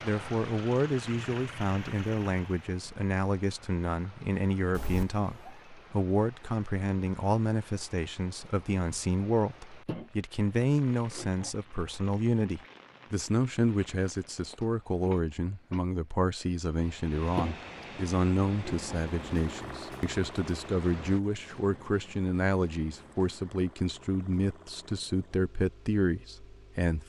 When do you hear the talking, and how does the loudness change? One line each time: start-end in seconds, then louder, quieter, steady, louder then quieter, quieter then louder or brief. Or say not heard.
0.0-27.0 steady.